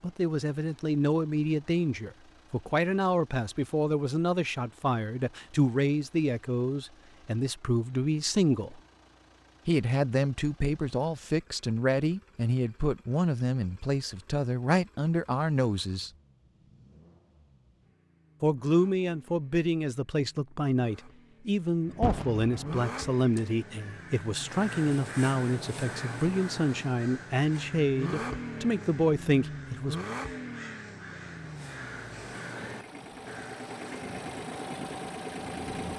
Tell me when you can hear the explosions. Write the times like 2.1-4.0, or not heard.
22.0-22.9.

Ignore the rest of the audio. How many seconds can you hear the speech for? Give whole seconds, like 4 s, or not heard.
27 s.